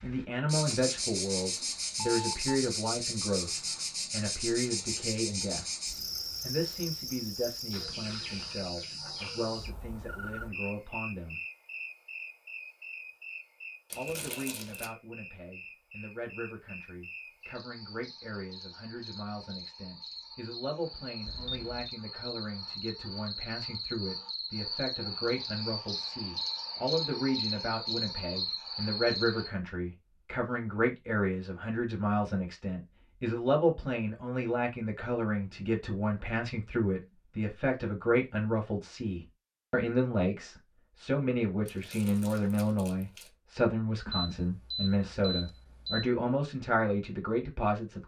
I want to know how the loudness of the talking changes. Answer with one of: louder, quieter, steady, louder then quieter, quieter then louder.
quieter then louder.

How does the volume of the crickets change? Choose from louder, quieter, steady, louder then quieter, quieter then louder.
quieter then louder.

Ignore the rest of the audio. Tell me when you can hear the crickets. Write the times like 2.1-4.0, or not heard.
0.0-29.5.